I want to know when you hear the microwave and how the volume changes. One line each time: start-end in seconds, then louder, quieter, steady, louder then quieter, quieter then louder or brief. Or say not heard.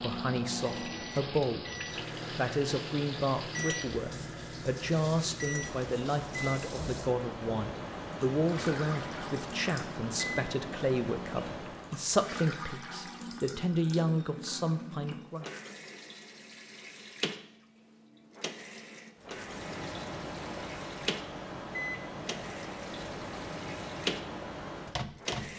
0.0-12.1 steady
19.2-25.5 steady.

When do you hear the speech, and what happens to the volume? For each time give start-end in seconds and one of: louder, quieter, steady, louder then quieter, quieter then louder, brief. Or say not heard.
0.0-1.7 brief
2.3-15.4 steady.